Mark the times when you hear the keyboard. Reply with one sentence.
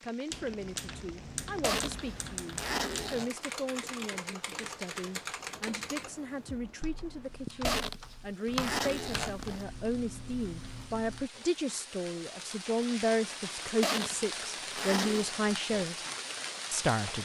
The keyboard can be heard from 0.3 to 11.3 s.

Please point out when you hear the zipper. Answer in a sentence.
You can hear the zipper from 1.6 to 3.3 s, from 7.6 to 9.7 s and from 13.8 to 15.3 s.